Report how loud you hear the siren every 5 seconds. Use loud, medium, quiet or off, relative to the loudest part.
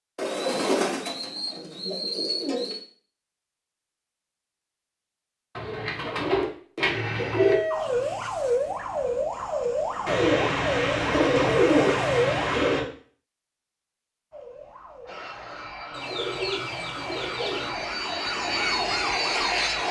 off, loud, loud, medium.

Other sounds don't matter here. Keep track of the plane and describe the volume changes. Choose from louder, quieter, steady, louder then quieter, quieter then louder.
louder.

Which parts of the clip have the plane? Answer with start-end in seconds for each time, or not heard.
15.1-19.8.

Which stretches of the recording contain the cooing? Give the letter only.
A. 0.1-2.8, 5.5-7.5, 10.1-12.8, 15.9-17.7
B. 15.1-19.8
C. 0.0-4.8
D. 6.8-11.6
A.